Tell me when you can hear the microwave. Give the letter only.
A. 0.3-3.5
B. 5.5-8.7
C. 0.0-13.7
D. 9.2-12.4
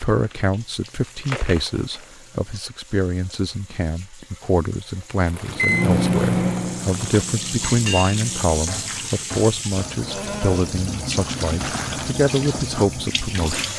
B.